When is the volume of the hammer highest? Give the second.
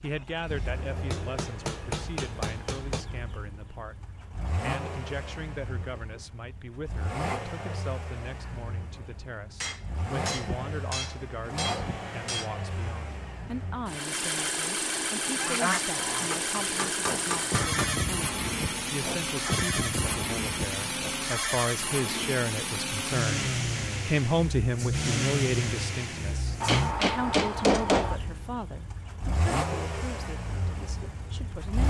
28 s.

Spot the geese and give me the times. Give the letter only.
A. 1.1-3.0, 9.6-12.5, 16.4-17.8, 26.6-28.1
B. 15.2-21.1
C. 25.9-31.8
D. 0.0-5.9
B.